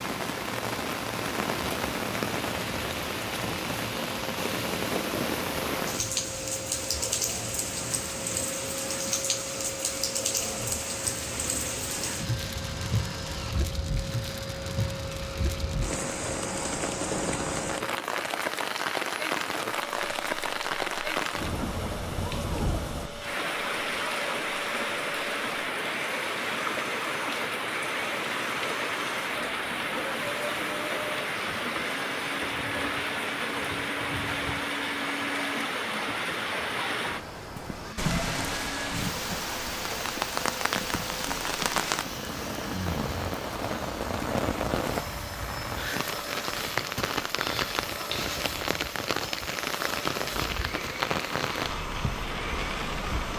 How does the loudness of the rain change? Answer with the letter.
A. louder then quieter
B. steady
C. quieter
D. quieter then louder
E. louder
B.